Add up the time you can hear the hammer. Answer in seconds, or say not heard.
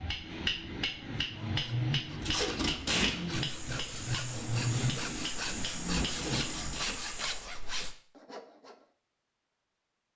7 s.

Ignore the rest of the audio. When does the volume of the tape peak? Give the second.
3 s.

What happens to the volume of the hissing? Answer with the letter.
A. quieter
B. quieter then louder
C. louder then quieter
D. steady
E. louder
D.